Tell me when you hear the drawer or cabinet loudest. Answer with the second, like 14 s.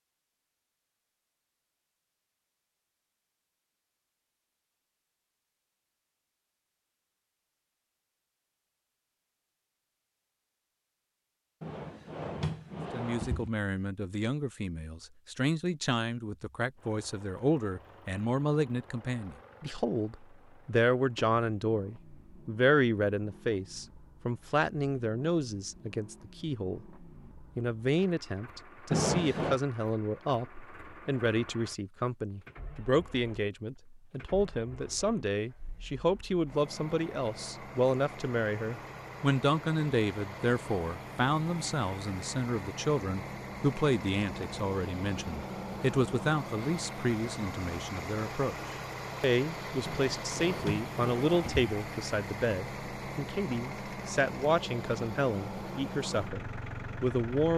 29 s.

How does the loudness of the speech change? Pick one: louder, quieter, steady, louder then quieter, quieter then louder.
steady.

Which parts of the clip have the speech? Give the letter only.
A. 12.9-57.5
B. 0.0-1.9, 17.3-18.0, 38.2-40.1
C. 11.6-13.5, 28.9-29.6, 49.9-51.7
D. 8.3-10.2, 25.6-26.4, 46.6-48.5
A.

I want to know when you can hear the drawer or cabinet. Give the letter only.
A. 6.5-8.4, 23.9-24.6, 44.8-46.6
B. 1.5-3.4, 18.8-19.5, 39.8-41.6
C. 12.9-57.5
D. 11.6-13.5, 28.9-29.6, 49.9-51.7
D.